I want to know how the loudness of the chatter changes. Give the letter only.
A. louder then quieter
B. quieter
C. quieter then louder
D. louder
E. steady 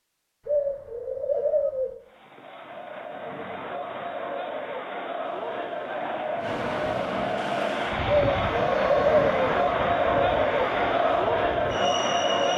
D.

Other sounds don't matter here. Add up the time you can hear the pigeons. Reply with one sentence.
You can hear the pigeons for 3 seconds altogether.